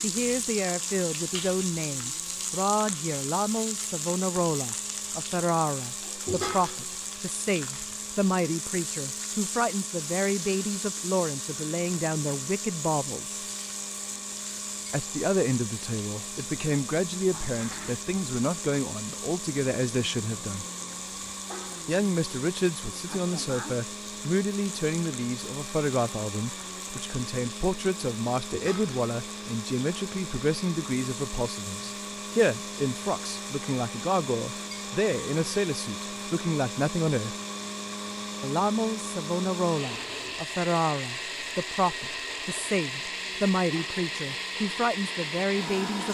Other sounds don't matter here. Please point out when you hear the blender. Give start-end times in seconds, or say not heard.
0.0-46.0.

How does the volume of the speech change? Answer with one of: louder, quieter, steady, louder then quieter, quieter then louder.
steady.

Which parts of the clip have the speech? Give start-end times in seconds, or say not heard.
0.0-13.4, 14.9-20.6, 21.9-37.4, 38.4-46.0.